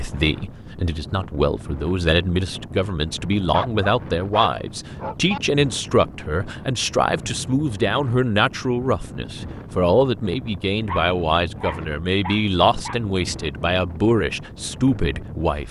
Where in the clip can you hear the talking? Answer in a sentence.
The talking can be heard from 0.0 to 15.6 s.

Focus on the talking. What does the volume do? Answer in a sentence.
The volume of the talking stays about the same.